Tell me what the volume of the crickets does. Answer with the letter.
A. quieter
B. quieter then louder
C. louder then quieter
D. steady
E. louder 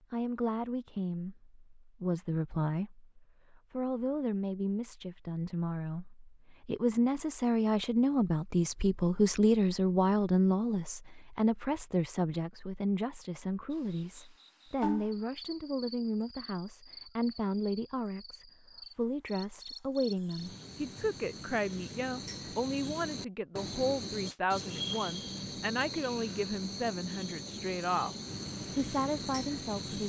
B.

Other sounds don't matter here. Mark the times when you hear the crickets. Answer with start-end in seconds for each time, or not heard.
13.7-30.0.